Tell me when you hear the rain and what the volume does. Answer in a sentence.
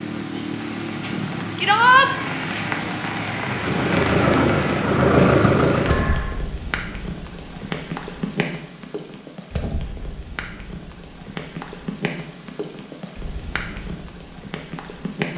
The rain can be heard from 0.0 to 15.3 s, getting quieter.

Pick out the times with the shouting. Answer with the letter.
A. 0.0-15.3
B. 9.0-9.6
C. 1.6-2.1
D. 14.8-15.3
C.